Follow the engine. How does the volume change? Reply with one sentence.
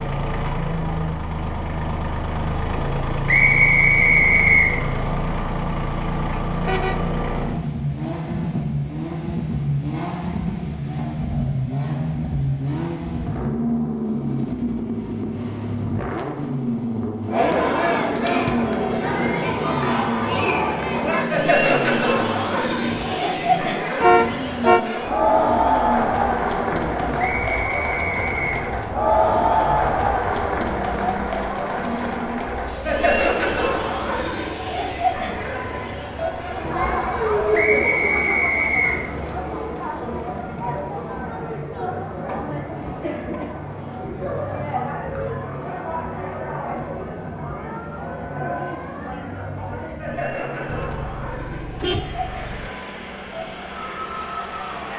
The loudness of the engine goes down.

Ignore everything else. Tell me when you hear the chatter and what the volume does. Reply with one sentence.
You can hear the chatter from 17.3 to 54.9 s, getting quieter.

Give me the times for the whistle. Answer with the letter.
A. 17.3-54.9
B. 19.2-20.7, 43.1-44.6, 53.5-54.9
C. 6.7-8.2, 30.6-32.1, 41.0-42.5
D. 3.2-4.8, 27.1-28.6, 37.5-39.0
D.